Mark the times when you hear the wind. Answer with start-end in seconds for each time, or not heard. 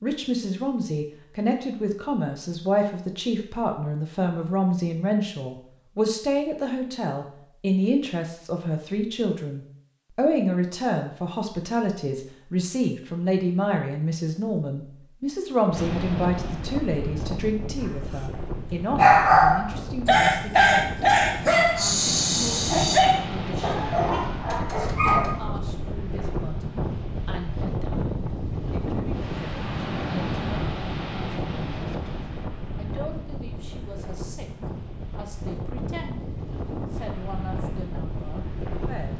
15.7-39.1.